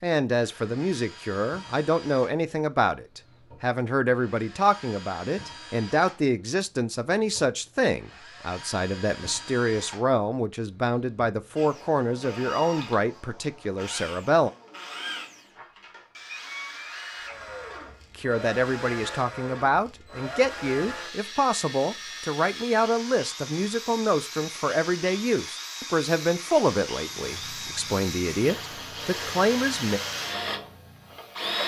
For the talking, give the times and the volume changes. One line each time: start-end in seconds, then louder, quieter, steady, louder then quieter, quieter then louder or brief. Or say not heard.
0.0-14.5 steady
18.1-30.0 steady.